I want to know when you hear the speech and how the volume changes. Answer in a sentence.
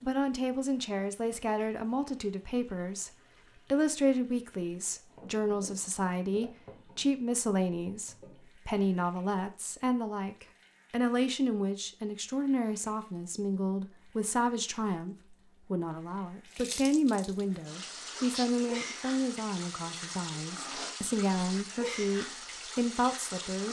You can hear the speech from 0.0 to 23.6 s, at a steady volume.